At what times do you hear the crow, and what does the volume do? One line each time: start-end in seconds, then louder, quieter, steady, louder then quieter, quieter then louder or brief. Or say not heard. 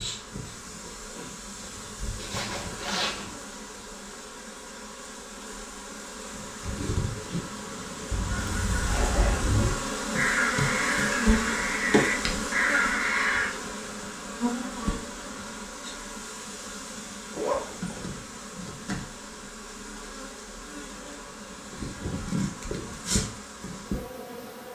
8.1-13.5 louder.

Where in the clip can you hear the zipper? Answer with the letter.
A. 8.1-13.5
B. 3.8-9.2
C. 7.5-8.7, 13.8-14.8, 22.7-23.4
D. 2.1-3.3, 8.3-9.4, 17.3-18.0
D.